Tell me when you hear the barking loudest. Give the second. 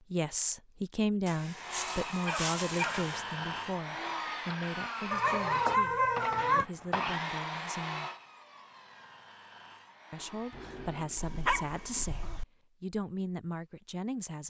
6 s.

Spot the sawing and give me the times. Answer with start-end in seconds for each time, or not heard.
1.5-11.1.